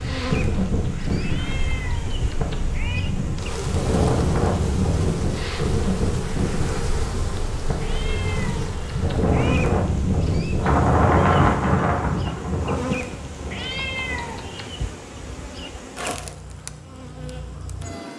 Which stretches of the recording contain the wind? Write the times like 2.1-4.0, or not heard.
0.0-14.3.